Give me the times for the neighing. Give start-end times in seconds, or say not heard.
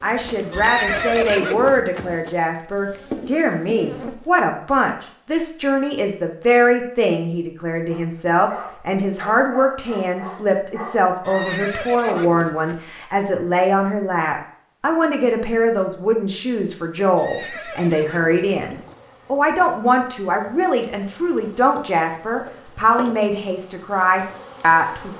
0.5-2.4, 11.2-12.8, 17.1-19.0.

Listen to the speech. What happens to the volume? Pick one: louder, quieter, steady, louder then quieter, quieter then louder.
steady.